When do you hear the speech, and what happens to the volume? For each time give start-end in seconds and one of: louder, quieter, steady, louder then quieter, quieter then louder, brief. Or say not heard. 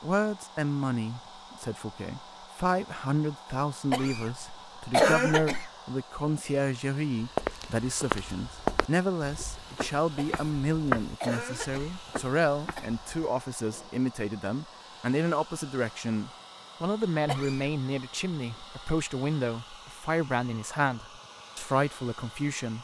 0.0-22.7 steady.